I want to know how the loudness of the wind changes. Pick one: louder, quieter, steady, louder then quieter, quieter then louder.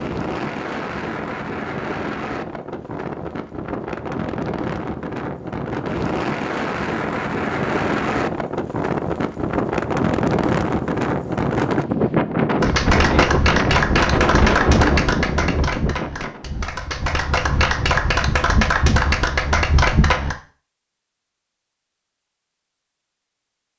louder.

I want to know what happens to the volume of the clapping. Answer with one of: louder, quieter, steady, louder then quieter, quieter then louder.
quieter then louder.